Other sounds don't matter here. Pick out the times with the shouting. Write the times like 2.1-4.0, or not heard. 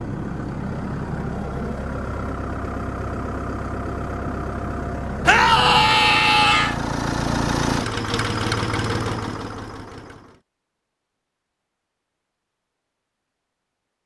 5.2-6.8.